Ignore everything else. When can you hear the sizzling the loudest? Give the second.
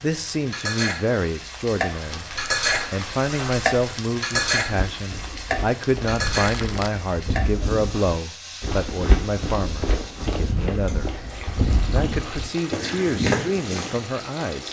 4 s.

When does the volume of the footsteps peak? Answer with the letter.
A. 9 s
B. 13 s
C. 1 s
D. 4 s
B.